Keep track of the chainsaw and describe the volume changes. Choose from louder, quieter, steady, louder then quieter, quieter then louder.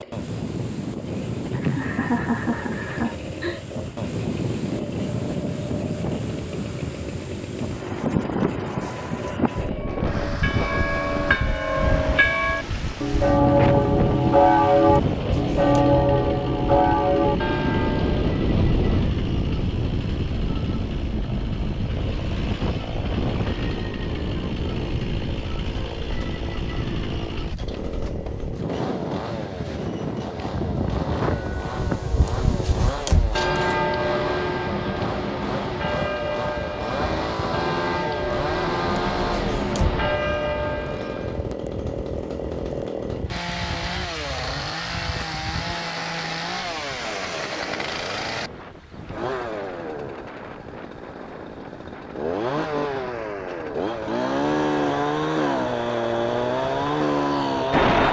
louder.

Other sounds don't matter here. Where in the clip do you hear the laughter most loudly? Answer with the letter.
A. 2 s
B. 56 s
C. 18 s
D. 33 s
A.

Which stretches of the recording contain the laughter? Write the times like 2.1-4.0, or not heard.
1.1-3.6.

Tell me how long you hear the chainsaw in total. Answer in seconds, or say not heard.
58 s.